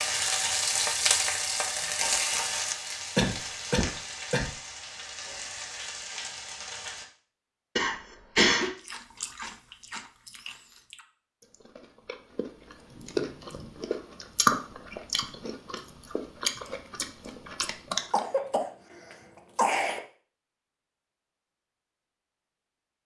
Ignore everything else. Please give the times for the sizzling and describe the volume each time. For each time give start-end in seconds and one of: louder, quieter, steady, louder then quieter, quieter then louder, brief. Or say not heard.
0.0-7.0 quieter.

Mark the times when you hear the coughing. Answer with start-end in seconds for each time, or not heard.
3.1-4.5, 7.8-8.7, 18.0-20.0.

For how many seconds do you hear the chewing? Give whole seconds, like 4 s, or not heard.
9 s.